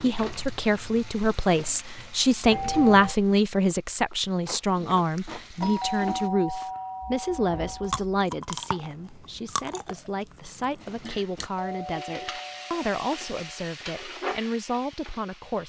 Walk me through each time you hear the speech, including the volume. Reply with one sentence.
The speech can be heard from 0.0 to 15.6 s, getting quieter.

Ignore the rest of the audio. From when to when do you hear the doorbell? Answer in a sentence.
You can hear the doorbell from 2.5 to 3.1 s, from 5.6 to 8.0 s and from 11.6 to 13.7 s.